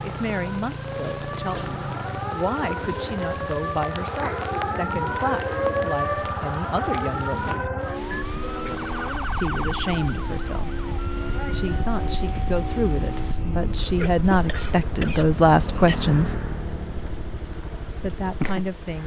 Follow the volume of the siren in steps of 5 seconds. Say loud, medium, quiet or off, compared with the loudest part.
loud, loud, medium, off.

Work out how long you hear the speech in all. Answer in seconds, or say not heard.
16 s.